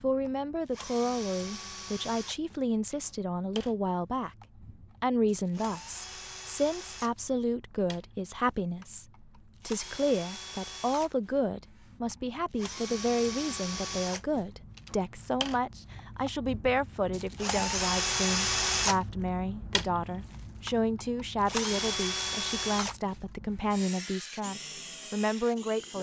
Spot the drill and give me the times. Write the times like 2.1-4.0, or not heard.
0.0-25.9.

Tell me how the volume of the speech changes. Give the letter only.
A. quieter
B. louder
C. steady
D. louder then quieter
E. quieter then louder
C.